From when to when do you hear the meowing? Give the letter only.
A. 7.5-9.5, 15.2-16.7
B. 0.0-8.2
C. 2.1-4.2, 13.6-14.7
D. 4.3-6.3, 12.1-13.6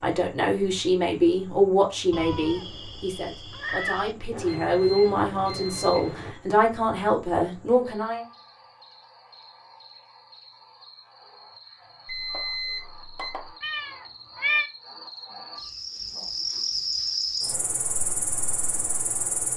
C.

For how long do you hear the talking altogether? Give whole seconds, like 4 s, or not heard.
8 s.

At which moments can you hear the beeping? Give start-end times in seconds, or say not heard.
4.3-6.3, 12.1-13.6.